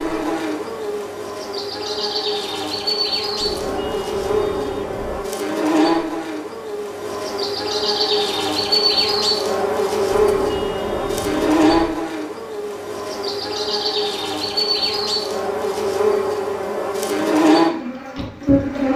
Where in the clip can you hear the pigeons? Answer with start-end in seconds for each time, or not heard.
3.4-5.3, 10.1-11.9.